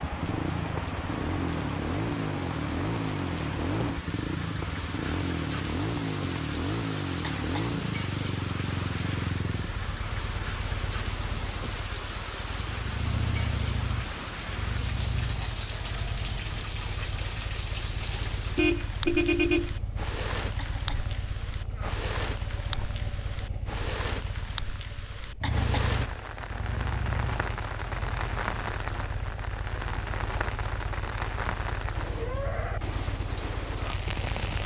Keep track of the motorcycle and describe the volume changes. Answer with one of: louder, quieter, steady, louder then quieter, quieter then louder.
quieter.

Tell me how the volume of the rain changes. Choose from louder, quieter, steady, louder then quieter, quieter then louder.
steady.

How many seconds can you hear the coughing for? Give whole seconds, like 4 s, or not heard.
2 s.